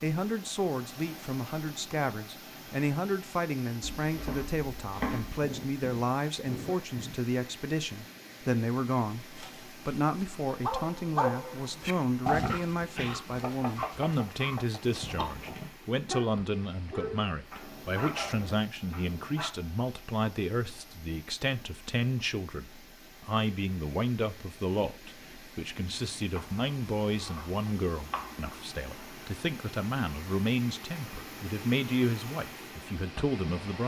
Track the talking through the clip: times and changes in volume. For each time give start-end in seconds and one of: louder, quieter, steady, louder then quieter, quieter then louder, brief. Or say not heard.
0.0-33.8 steady.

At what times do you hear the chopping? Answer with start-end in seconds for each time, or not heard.
3.8-5.4, 13.4-14.8, 26.4-28.6.